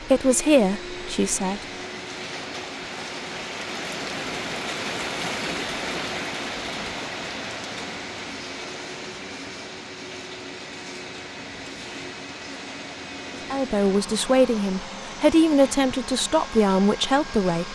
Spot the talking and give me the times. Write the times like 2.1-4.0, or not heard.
0.0-1.6, 13.5-17.7.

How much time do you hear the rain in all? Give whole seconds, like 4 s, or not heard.
18 s.